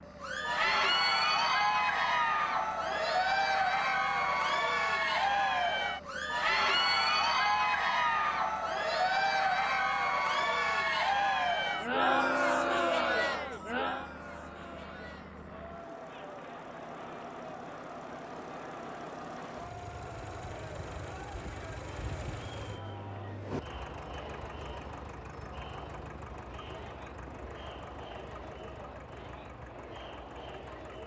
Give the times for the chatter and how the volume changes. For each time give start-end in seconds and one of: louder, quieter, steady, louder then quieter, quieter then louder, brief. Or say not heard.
0.1-31.0 quieter.